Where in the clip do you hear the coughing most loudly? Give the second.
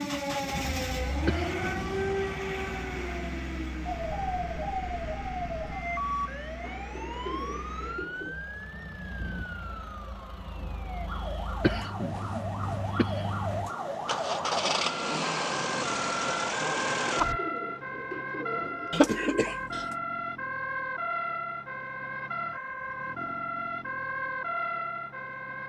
19 s.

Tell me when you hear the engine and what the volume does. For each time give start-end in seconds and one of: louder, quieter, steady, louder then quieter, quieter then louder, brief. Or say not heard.
0.0-17.4 quieter then louder.